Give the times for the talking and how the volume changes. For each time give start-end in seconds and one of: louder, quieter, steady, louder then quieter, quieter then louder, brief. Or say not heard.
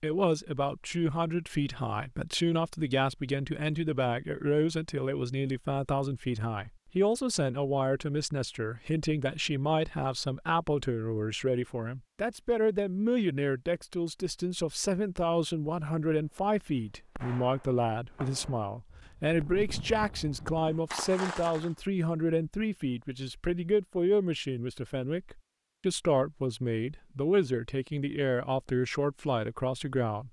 0.0-30.2 steady.